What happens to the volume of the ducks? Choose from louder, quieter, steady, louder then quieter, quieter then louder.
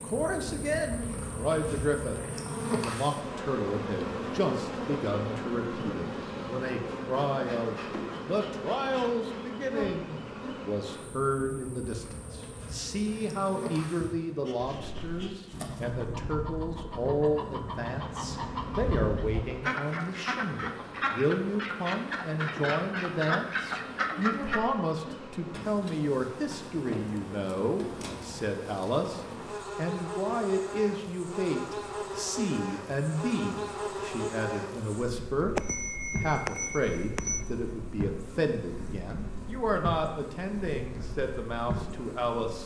louder.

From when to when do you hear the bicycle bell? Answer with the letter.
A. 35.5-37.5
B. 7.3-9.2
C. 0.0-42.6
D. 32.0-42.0
A.